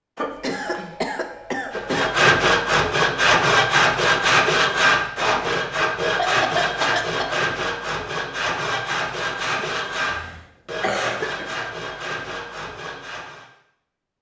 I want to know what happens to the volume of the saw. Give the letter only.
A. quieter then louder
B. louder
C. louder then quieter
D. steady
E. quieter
E.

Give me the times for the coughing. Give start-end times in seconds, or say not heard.
0.1-2.1, 6.2-7.4, 9.6-11.5.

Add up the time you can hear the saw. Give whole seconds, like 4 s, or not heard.
12 s.